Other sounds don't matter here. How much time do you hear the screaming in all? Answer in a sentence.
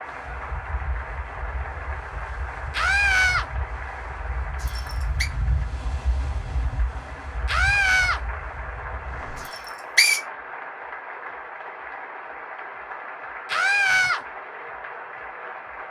You can hear the screaming for 2 seconds altogether.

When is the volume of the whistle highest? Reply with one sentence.
The volume of the whistle peaks at 10 seconds.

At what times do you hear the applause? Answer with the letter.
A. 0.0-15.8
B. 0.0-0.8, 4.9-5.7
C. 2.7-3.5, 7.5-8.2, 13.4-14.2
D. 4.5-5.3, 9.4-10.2
A.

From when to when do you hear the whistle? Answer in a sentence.
You can hear the whistle from 4.5 to 5.3 s and from 9.4 to 10.2 s.